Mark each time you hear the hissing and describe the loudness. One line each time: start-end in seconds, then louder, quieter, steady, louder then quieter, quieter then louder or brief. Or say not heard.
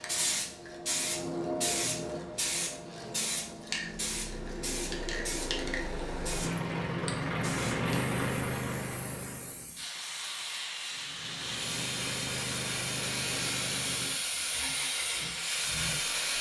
0.0-16.3 quieter then louder.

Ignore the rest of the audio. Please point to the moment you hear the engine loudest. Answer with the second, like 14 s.
8 s.